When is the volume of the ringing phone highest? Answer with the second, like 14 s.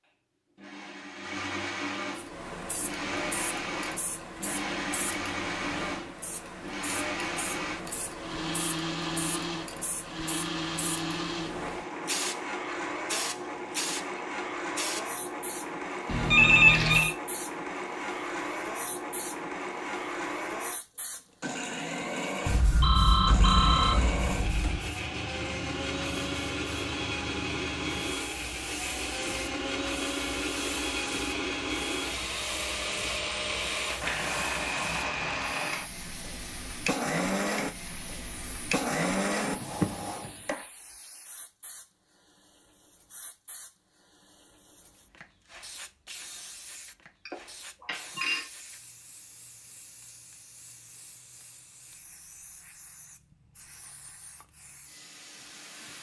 17 s.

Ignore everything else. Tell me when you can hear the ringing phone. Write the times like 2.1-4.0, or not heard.
16.1-17.1, 22.4-24.9, 47.2-48.5.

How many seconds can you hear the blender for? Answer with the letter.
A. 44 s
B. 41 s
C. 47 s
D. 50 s
B.